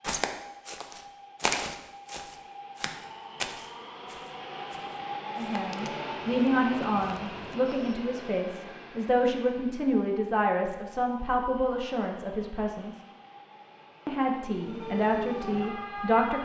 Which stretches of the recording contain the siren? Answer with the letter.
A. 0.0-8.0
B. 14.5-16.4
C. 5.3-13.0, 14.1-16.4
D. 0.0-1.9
B.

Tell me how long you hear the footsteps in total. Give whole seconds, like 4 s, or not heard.
8 s.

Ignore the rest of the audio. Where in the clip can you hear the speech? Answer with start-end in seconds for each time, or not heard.
5.3-13.0, 14.1-16.4.